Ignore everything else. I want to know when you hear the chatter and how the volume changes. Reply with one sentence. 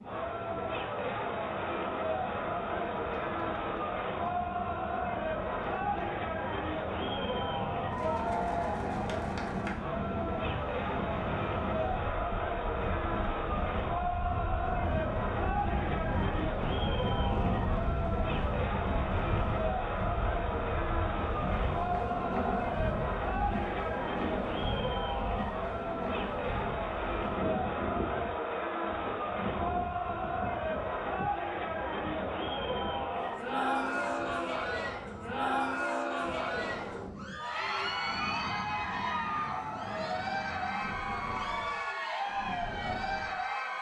You can hear the chatter from 0.0 to 43.7 s, at a steady volume.